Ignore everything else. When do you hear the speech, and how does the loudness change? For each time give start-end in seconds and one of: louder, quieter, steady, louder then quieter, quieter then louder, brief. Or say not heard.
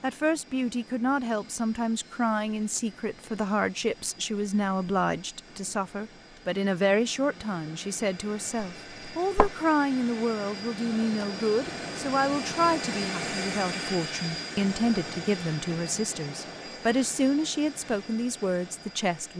0.0-19.3 steady.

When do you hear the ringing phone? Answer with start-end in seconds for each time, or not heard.
8.6-9.6.